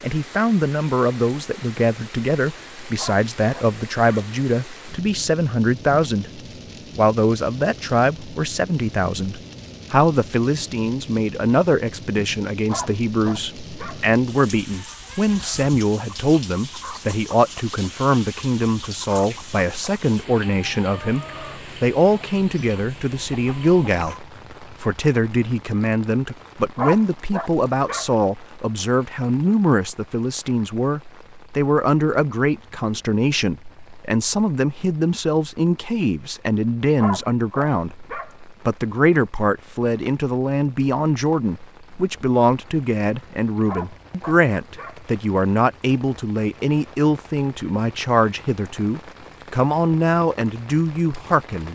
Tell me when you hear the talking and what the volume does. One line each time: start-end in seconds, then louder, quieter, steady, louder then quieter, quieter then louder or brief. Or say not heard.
0.0-51.6 steady.